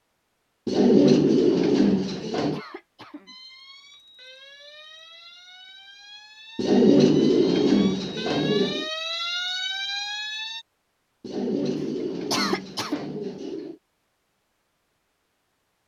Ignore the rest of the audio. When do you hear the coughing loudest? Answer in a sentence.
The volume of the coughing peaks at 12 seconds.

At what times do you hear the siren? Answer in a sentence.
The siren can be heard from 3.2 to 10.7 s.